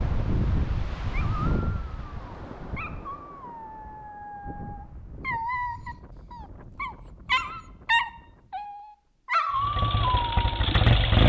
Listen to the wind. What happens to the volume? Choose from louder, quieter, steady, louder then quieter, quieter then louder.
quieter.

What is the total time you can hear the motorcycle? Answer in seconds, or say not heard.
2 s.